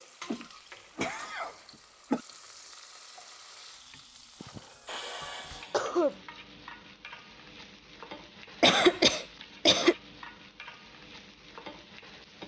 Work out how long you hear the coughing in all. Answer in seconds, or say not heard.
5 s.